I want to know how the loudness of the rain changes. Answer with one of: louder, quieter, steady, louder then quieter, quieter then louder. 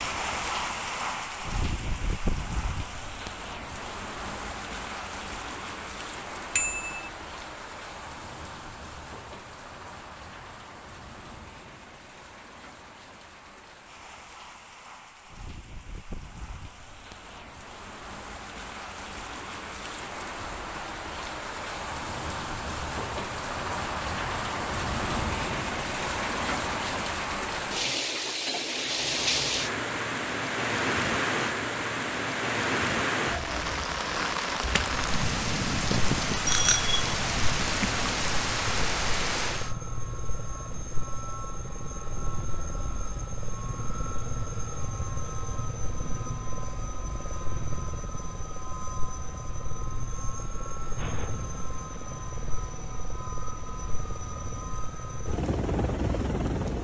quieter then louder.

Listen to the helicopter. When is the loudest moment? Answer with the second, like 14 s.
56 s.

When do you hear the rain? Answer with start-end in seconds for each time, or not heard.
0.0-39.8.